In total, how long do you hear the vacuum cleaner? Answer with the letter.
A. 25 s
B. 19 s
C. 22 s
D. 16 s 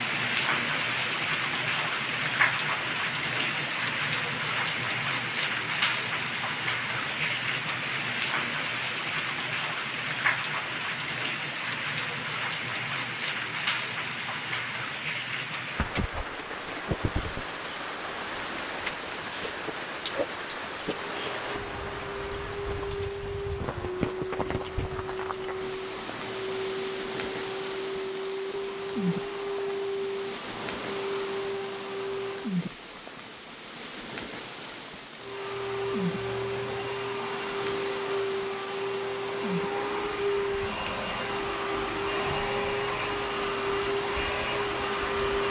C.